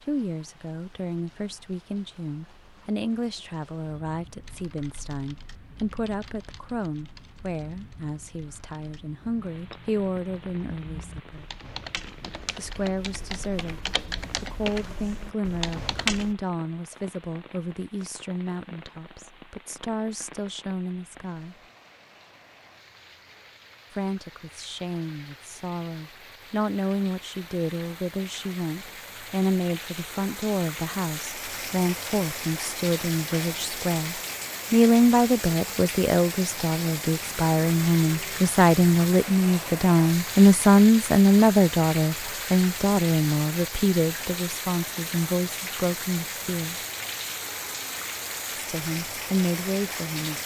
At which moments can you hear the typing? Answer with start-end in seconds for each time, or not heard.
4.4-16.4.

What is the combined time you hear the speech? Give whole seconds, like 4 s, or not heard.
45 s.